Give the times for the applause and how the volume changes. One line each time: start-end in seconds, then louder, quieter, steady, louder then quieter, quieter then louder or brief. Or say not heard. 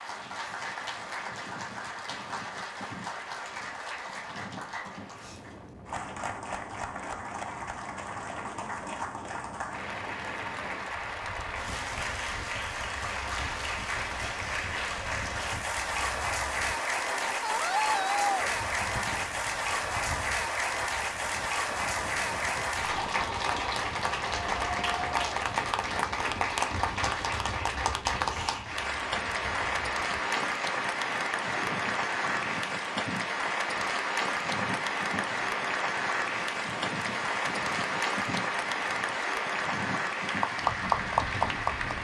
0.0-41.9 louder.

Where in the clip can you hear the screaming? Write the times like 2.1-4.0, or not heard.
17.4-18.4.